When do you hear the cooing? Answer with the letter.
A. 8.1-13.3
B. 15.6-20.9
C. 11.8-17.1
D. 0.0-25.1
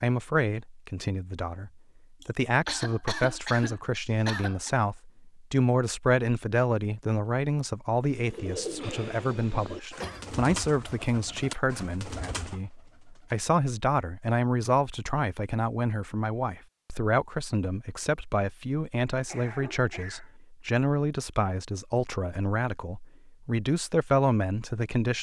A.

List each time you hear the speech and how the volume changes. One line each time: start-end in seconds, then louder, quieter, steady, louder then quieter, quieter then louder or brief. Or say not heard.
0.0-25.1 steady.